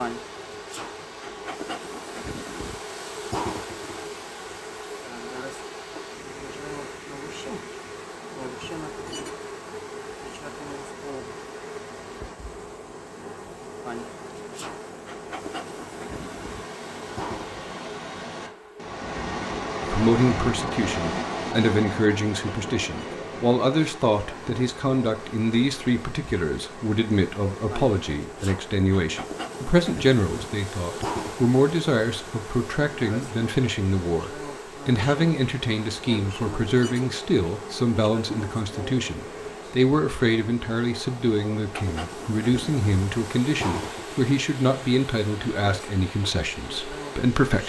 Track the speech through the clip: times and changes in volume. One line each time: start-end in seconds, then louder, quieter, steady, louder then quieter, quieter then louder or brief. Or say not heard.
19.8-47.6 steady.